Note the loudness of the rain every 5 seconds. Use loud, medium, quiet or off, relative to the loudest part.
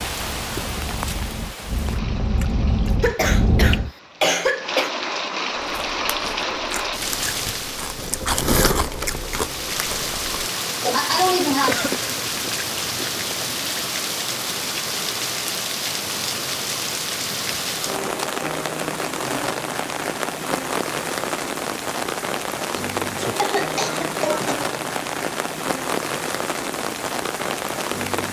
medium, loud, loud, loud, loud, loud.